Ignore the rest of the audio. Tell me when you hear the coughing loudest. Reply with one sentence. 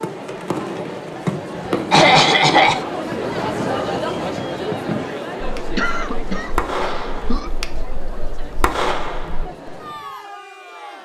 The volume of the coughing peaks at 2 seconds.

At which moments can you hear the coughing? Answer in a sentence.
The coughing can be heard from 1.9 to 2.9 s and from 5.8 to 7.5 s.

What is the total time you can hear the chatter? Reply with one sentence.
You can hear the chatter for 11 seconds altogether.